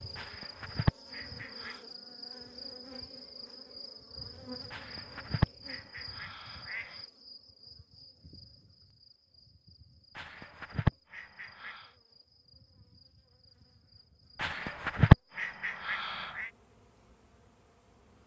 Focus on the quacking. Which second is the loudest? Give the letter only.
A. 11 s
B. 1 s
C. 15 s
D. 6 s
C.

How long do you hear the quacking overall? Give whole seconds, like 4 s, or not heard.
8 s.